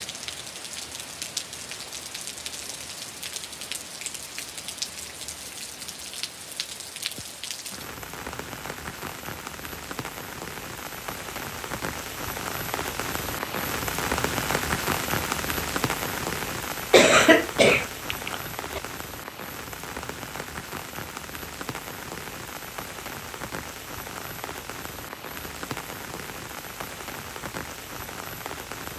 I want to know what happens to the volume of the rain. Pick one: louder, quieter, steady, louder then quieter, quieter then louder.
louder then quieter.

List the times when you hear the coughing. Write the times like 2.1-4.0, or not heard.
16.9-18.8.